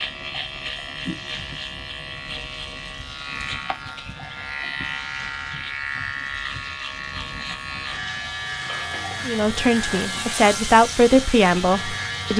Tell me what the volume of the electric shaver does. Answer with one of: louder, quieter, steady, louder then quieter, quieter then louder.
steady.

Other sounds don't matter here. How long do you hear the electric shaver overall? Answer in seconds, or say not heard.
12 s.